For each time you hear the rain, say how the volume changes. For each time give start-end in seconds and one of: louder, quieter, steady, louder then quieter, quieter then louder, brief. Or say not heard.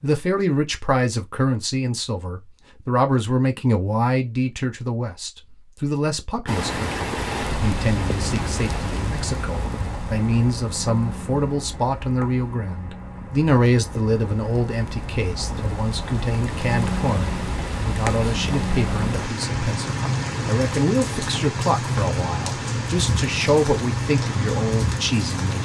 6.5-25.6 quieter then louder.